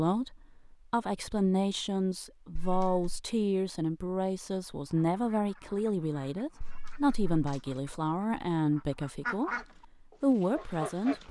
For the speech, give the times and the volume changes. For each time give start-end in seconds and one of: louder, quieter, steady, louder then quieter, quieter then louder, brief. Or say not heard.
0.0-11.2 steady.